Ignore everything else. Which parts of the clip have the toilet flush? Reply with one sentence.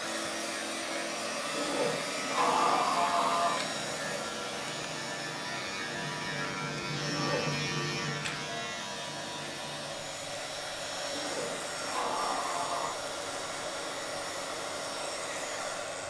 You can hear the toilet flush from 1.6 to 3.5 s, from 7.0 to 7.7 s and from 11.1 to 12.9 s.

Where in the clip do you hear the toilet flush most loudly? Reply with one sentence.
The loudest moment of the toilet flush is at 3 seconds.